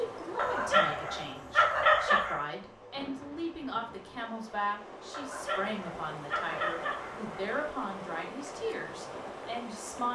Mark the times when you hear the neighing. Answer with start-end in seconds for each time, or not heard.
not heard.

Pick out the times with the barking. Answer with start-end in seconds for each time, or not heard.
0.3-2.5, 5.1-7.3.